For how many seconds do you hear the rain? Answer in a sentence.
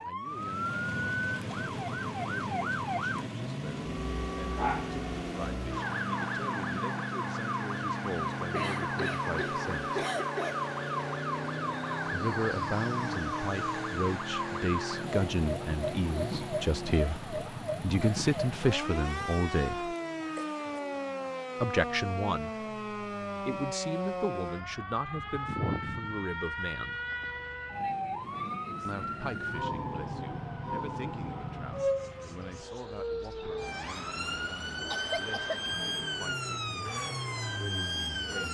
You can't hear the rain here.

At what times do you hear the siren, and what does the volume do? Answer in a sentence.
The siren can be heard from 0.0 to 38.5 s, at a steady volume.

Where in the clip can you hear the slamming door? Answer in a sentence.
The slamming door can't be heard in this clip.